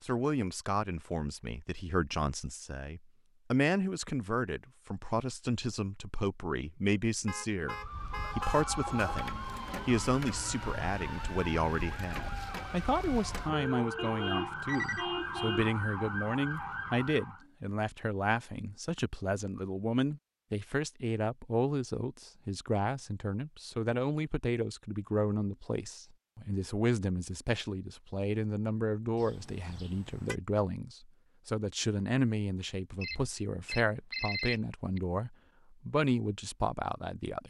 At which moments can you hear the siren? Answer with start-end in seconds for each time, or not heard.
7.6-17.4.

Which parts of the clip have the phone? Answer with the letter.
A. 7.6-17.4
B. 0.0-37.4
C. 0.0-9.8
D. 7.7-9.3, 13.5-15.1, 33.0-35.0
D.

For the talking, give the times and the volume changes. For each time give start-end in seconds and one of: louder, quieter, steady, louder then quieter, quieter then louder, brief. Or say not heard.
0.0-37.4 steady.